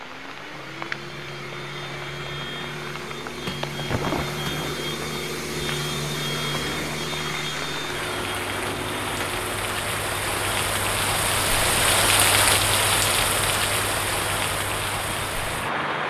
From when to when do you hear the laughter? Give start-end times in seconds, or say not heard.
not heard.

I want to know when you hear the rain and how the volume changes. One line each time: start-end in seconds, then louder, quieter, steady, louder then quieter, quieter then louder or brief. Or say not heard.
0.0-16.0 louder.